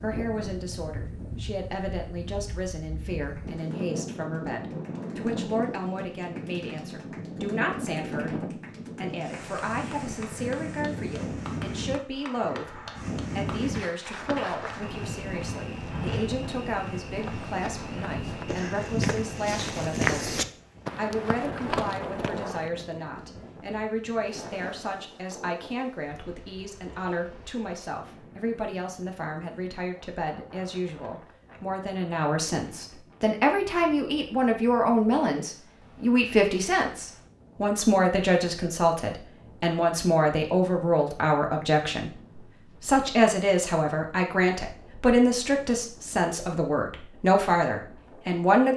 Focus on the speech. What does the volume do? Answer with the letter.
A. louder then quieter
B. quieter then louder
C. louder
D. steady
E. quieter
C.